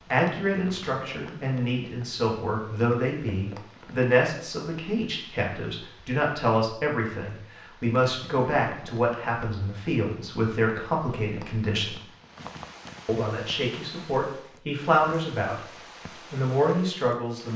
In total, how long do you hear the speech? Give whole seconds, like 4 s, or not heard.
16 s.